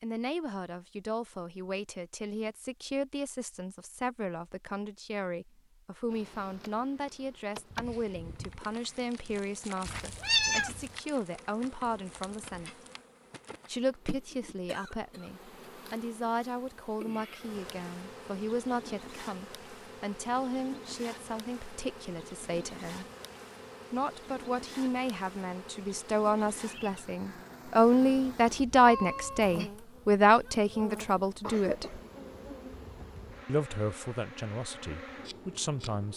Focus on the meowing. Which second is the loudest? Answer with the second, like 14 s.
10 s.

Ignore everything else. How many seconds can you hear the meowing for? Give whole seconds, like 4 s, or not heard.
2 s.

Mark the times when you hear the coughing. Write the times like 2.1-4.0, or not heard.
14.7-15.3, 31.3-32.0.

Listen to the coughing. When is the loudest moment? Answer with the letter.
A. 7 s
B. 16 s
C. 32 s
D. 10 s
C.